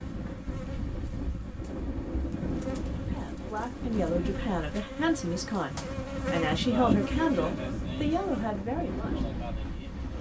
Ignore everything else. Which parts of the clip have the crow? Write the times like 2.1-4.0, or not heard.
not heard.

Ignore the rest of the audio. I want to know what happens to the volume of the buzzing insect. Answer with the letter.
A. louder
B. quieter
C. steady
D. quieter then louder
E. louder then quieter
E.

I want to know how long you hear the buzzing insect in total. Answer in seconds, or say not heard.
10 s.